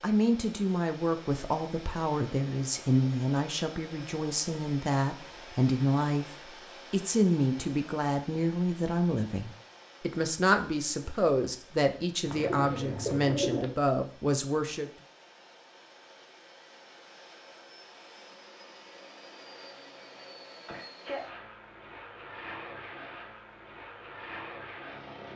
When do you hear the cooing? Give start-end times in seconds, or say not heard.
12.2-13.8.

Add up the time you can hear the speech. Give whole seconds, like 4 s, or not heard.
14 s.